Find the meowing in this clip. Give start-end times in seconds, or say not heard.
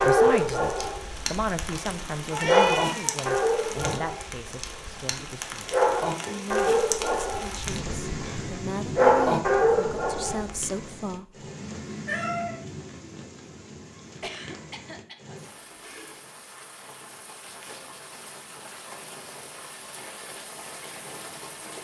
2.3-3.1, 11.6-12.6, 15.6-16.2.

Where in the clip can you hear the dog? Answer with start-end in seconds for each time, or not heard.
0.0-10.5.